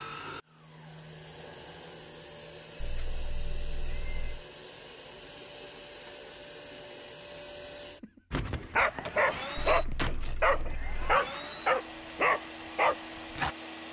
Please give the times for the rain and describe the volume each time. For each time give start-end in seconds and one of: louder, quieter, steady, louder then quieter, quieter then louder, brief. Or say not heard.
not heard.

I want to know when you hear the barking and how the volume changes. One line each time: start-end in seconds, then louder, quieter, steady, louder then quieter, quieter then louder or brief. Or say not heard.
8.3-13.6 steady.